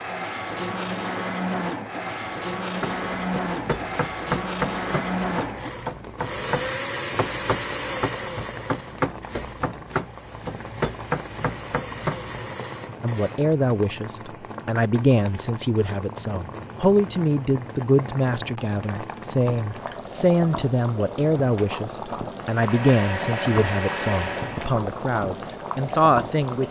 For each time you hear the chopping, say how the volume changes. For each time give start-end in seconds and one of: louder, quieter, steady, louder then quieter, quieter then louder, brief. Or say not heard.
2.8-12.3 steady.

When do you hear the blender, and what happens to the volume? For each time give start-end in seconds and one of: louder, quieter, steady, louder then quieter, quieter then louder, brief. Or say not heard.
0.0-13.4 quieter
22.4-24.7 brief.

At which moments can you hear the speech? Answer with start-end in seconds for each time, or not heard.
13.0-26.6.